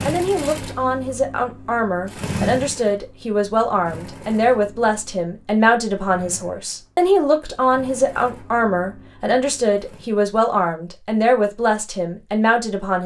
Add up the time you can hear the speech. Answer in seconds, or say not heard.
13 s.